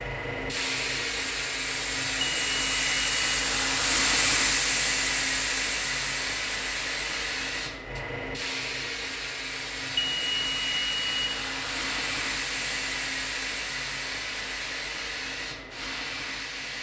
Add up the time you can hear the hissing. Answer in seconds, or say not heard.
17 s.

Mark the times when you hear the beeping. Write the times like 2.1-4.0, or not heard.
2.2-3.5, 9.9-11.3.